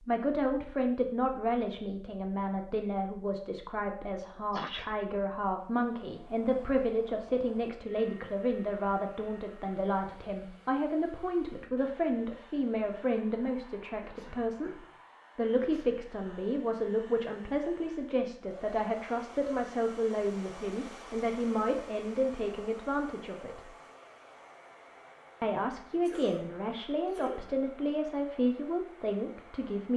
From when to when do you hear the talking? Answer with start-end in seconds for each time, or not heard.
0.0-23.7, 25.4-29.9.